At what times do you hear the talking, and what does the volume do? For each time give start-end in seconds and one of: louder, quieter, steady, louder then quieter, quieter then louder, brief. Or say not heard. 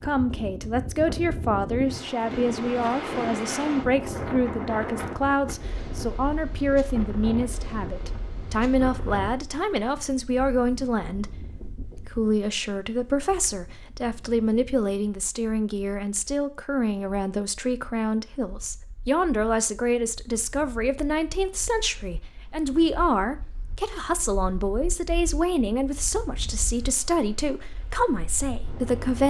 0.0-29.2 steady.